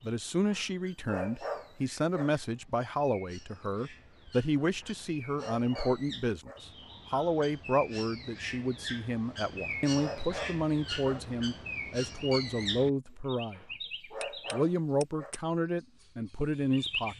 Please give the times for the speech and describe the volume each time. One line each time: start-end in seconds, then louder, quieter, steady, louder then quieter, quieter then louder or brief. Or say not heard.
0.0-13.7 steady
14.5-17.1 brief.